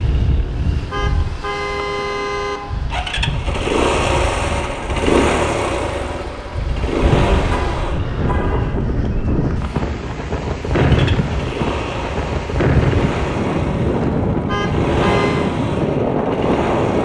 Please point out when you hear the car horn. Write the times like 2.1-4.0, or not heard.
0.9-2.6, 7.5-8.8, 14.4-15.5.